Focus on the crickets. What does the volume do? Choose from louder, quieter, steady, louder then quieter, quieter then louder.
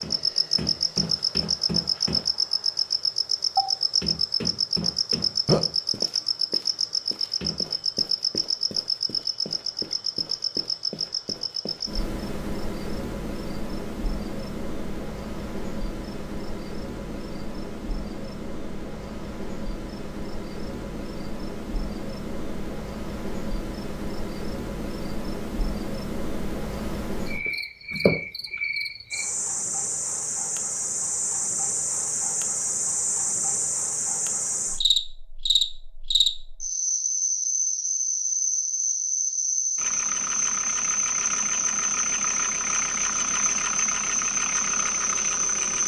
quieter then louder.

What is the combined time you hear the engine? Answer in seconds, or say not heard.
6 s.